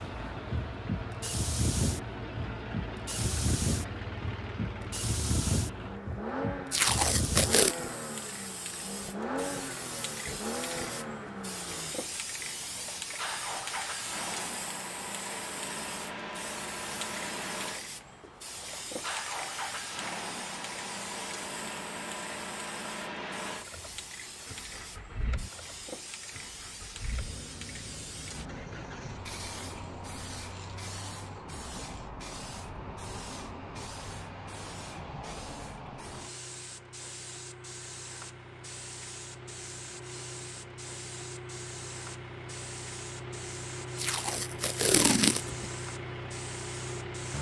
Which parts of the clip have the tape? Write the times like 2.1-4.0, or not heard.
6.7-7.8, 44.0-45.7.